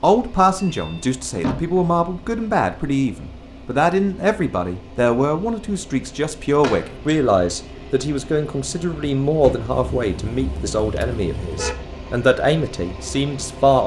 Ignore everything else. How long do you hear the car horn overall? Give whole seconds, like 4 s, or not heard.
2 s.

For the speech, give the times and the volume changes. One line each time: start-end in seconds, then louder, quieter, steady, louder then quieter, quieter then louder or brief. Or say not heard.
0.0-13.8 steady.